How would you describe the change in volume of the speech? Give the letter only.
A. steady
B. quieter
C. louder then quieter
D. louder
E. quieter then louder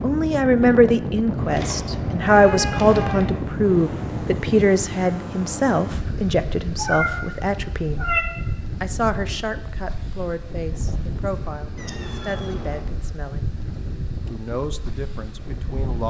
B.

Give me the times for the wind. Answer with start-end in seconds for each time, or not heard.
0.0-16.0.